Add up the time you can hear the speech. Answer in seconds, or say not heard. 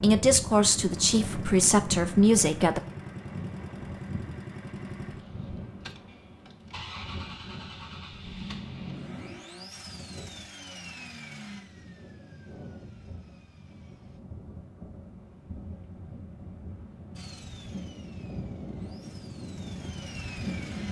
3 s.